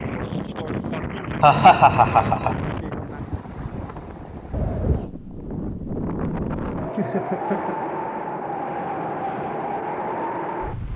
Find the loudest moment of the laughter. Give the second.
2 s.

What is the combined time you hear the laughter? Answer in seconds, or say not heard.
2 s.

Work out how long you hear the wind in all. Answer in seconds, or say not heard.
11 s.